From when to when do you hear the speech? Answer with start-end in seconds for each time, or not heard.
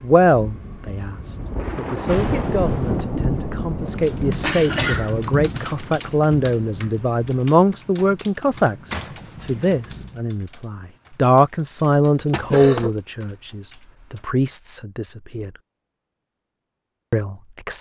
0.0-15.5, 17.1-17.7.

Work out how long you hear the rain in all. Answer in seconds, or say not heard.
10 s.